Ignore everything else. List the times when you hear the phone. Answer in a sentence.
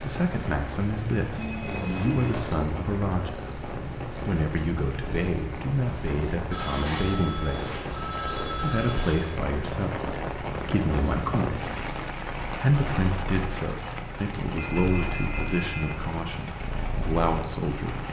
The phone can be heard from 1.4 to 2.4 s, from 6.5 to 9.2 s and from 14.6 to 15.8 s.